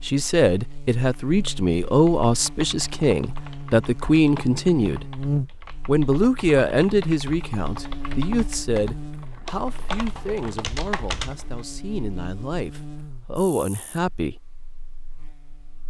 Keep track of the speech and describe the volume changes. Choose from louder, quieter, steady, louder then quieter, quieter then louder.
quieter.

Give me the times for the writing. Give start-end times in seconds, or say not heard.
not heard.